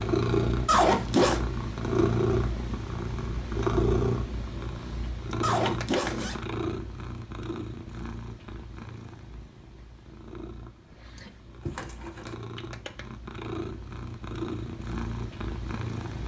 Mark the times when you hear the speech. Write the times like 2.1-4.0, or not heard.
not heard.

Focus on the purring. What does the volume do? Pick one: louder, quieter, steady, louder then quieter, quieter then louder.
quieter then louder.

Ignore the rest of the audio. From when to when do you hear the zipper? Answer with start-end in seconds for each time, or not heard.
0.7-1.4, 5.4-6.3, 11.7-12.3.